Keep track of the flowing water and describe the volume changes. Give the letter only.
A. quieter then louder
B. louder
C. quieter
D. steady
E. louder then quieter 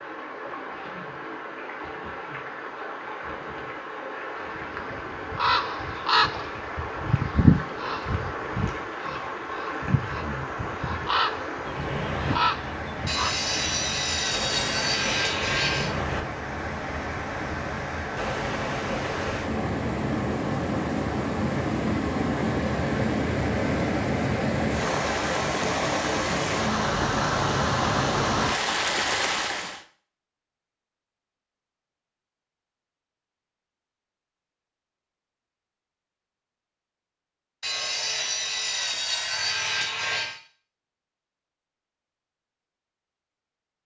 B.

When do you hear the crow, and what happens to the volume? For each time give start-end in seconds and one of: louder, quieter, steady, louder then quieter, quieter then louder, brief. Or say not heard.
4.3-13.3 quieter then louder.